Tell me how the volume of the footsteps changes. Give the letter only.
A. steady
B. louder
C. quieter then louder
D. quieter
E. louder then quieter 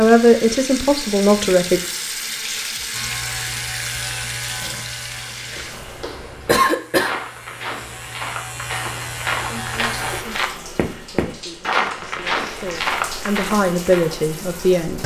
B.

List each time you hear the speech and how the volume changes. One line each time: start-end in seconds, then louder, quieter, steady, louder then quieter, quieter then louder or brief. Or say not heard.
0.0-1.8 brief
9.4-15.0 louder.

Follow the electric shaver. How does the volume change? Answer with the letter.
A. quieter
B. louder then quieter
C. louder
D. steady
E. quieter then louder
E.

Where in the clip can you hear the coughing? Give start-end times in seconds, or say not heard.
6.5-7.2.